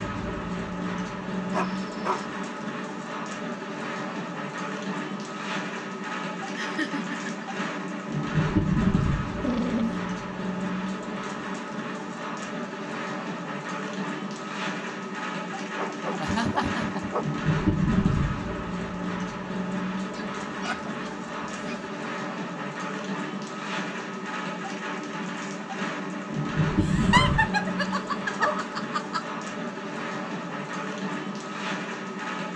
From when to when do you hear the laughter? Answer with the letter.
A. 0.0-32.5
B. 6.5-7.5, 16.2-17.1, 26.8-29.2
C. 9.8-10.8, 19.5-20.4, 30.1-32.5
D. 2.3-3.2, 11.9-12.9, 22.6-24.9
B.